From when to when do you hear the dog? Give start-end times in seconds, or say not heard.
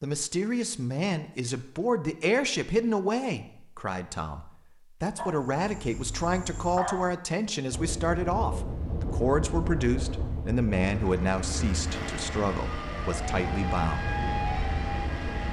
5.2-7.2.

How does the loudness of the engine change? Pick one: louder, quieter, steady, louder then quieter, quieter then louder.
steady.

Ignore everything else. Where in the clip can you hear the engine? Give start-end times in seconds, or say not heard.
10.8-15.4.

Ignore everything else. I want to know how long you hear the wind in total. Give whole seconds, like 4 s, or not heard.
8 s.